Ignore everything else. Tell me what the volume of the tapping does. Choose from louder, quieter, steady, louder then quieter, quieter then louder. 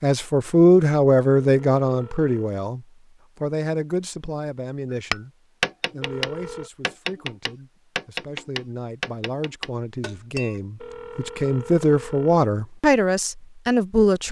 quieter.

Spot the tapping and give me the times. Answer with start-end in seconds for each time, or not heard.
5.1-10.6.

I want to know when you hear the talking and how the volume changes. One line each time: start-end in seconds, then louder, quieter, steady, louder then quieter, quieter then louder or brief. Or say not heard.
0.0-5.3 quieter
5.9-14.2 louder.